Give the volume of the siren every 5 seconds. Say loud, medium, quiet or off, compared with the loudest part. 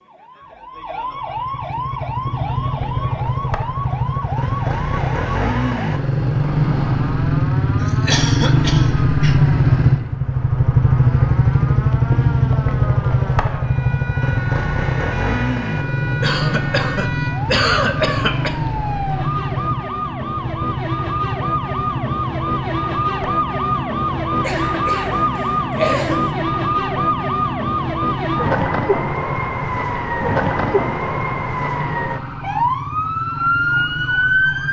medium, quiet, quiet, medium, loud, loud, loud.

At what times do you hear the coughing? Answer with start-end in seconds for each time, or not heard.
7.8-9.4, 16.2-18.6, 24.4-26.3.